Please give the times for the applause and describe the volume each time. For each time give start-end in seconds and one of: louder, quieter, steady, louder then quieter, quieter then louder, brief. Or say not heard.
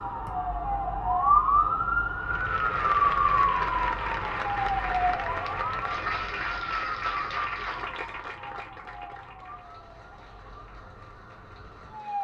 2.2-12.2 quieter.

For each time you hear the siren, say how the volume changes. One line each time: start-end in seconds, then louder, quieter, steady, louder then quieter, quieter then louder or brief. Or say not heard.
0.0-12.2 quieter.